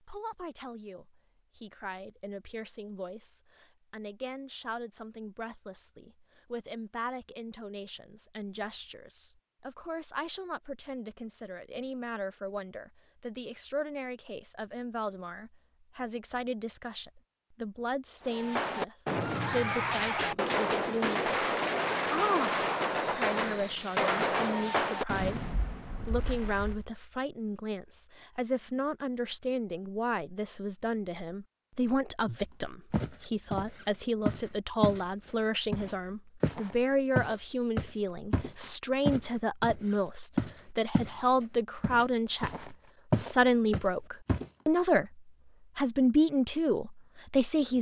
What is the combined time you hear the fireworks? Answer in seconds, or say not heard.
9 s.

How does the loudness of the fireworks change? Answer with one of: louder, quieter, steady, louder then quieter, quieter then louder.
quieter.